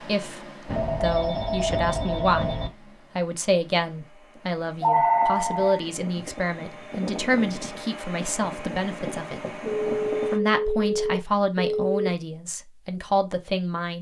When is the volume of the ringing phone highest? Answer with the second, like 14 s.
5 s.